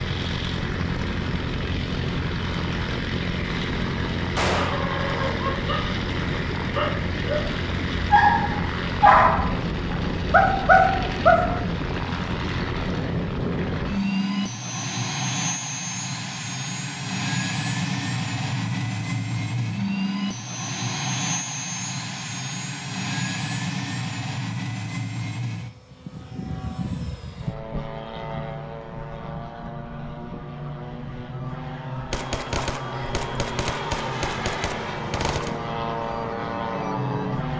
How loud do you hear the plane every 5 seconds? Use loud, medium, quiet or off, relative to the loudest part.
loud, loud, loud, loud, loud, medium, medium, loud.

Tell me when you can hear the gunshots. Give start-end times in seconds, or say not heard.
4.3-4.8, 32.1-35.5.